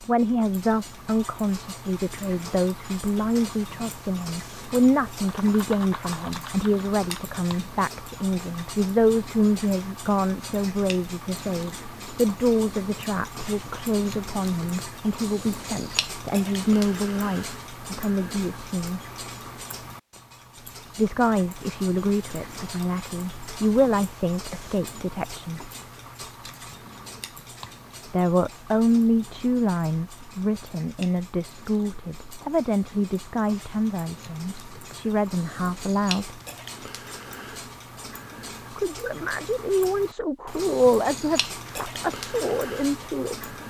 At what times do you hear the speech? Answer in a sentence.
You can hear the speech from 0.0 to 19.0 s, from 20.9 to 25.7 s, from 28.1 to 36.4 s and from 38.8 to 43.5 s.